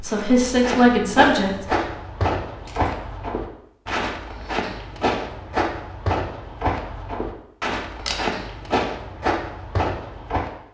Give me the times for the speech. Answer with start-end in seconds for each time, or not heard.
0.0-1.7.